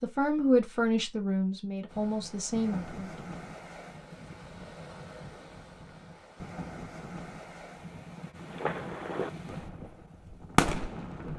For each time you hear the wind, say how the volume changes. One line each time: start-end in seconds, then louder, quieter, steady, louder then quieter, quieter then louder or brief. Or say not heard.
1.9-11.3 steady.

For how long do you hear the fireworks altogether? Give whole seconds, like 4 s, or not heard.
3 s.